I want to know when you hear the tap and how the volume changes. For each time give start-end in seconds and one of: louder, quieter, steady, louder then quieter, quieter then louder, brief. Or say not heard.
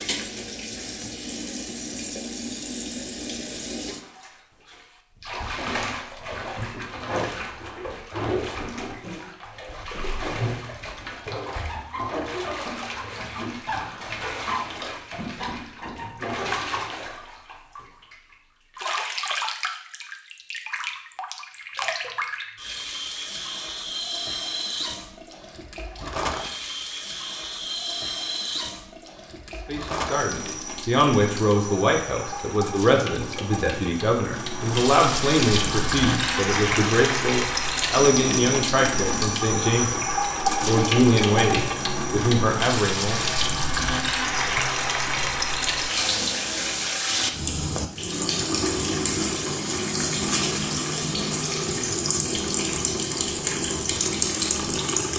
0.0-55.1 louder.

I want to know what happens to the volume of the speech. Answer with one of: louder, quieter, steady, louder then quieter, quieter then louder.
steady.